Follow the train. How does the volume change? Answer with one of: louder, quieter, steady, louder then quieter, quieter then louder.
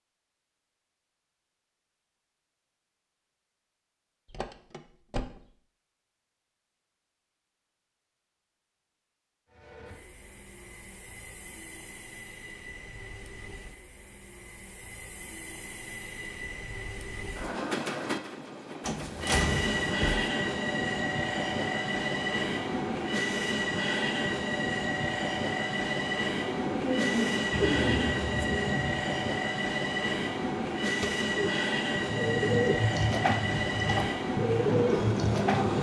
louder.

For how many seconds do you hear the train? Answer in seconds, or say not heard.
26 s.